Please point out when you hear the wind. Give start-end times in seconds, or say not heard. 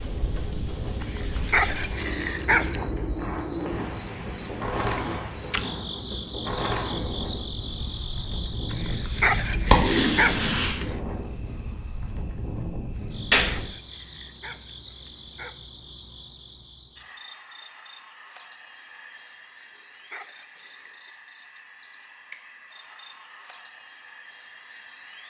0.0-13.7.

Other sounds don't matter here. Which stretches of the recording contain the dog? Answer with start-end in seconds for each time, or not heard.
1.0-2.8, 8.7-10.9, 12.9-15.6, 19.6-21.1.